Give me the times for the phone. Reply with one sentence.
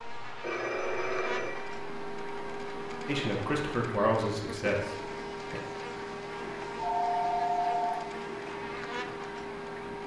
You can hear the phone from 0.4 to 1.7 s and from 6.8 to 8.0 s.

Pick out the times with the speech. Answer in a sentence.
You can hear the speech from 3.0 to 5.6 s.